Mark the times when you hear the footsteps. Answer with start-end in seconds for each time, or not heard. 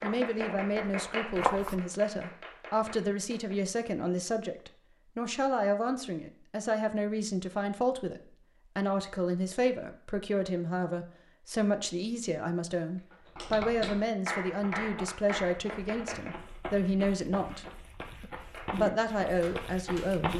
0.0-1.8, 14.4-20.3.